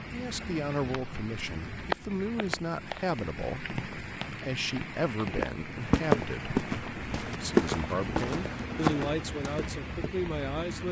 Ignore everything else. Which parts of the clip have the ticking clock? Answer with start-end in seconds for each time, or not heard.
not heard.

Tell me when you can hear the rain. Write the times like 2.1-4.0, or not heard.
0.0-10.8.